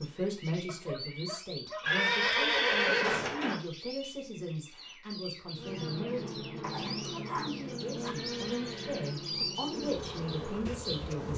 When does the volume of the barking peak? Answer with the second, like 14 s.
7 s.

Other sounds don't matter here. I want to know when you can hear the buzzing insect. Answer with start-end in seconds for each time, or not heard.
5.5-11.3.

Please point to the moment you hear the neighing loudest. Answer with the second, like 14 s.
3 s.